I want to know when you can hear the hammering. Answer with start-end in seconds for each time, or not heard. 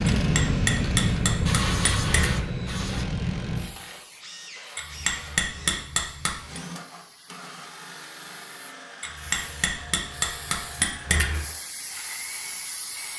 0.2-2.4, 4.8-6.6, 9.0-11.4.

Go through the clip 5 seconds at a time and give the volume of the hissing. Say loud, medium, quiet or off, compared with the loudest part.
loud, quiet, quiet.